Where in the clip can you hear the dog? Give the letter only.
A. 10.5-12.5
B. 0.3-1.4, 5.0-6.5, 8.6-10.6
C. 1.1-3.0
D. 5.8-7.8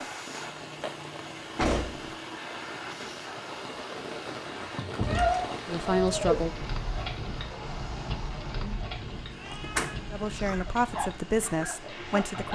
A.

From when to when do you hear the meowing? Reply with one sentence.
The meowing can be heard from 0.3 to 1.4 s, from 5.0 to 6.5 s and from 8.6 to 10.6 s.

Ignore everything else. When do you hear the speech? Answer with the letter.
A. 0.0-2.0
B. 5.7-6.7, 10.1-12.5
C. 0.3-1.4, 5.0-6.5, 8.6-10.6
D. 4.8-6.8
B.